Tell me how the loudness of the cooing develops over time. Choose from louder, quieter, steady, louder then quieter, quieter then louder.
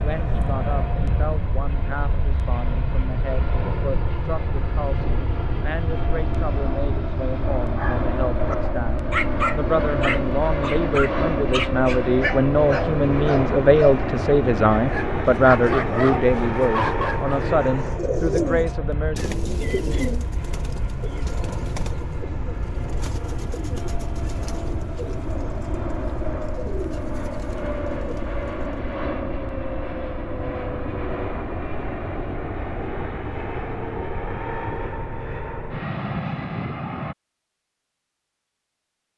quieter.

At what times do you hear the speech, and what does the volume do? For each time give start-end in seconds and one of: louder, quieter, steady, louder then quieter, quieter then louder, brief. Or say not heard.
0.0-19.3 louder.